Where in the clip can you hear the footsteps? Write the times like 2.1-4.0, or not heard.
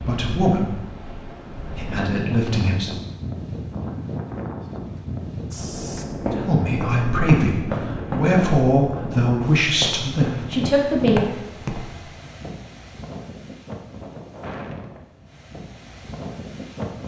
5.5-12.1.